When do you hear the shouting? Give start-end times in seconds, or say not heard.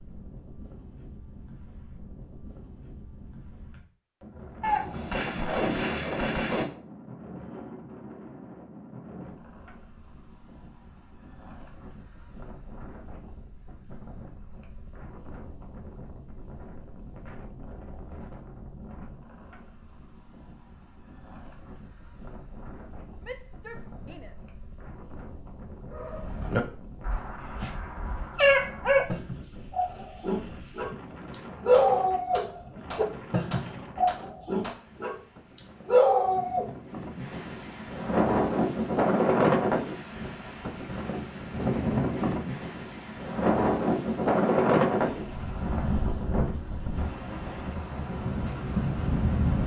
23.2-24.6.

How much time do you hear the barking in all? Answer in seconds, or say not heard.
11 s.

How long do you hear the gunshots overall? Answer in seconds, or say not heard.
5 s.